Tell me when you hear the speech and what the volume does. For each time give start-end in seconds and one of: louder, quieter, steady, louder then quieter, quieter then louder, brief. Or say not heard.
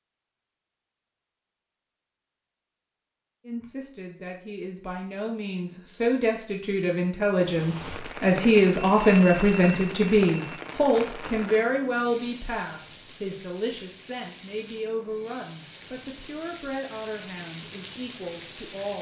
3.5-18.9 louder then quieter.